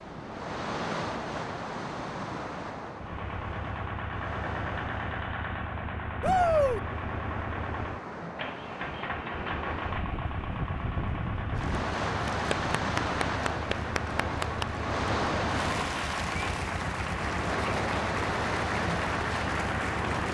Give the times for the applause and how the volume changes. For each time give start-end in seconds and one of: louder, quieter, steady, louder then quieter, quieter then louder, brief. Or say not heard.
11.6-20.3 steady.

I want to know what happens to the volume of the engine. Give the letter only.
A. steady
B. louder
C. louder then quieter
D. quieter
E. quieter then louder
A.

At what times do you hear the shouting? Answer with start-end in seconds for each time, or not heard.
6.2-6.8.